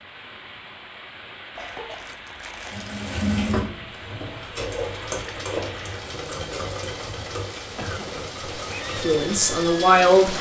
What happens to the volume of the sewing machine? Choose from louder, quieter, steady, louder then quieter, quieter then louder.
quieter.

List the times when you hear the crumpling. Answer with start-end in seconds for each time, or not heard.
1.6-3.2.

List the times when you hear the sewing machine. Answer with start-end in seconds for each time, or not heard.
2.7-10.3.